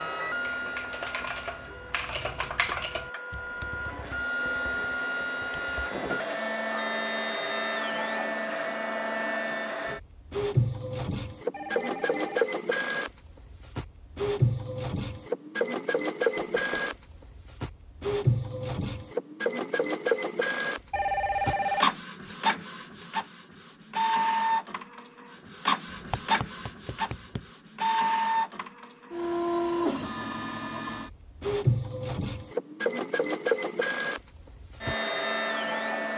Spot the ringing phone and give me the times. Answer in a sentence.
The ringing phone can be heard from 11.5 to 12.4 s and from 20.9 to 21.9 s.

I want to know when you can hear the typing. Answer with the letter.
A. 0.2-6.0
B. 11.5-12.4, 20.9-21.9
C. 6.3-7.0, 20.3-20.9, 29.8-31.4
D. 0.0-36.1
A.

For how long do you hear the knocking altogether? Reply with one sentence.
You can hear the knocking for 3 seconds altogether.